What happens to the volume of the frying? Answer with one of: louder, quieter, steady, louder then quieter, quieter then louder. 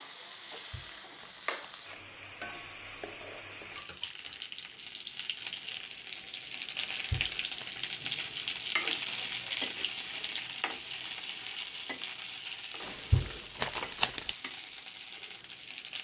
louder then quieter.